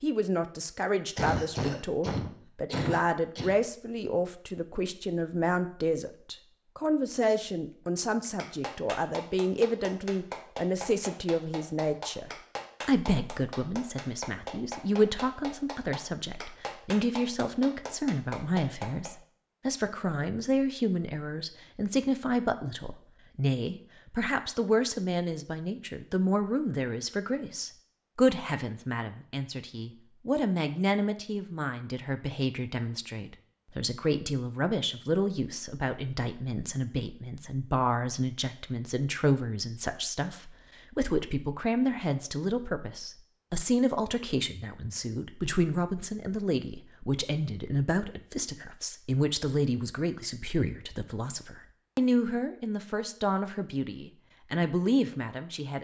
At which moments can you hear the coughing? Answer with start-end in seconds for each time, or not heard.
1.1-3.5.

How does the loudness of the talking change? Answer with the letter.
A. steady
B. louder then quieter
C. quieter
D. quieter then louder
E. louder
A.